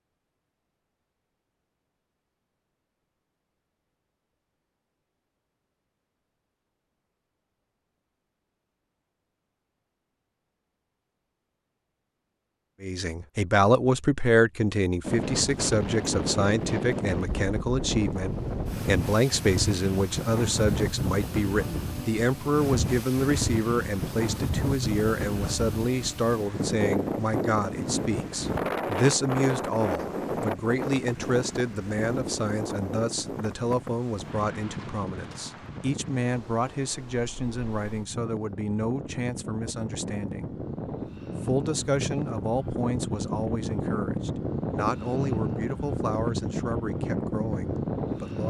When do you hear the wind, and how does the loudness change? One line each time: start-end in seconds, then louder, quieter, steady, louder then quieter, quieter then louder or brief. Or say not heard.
15.0-48.4 quieter then louder.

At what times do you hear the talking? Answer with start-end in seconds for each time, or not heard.
12.8-40.5, 41.4-48.4.